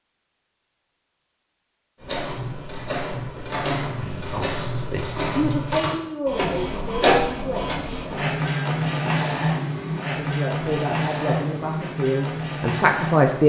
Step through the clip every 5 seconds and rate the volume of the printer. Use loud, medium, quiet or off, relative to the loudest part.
medium, loud, loud.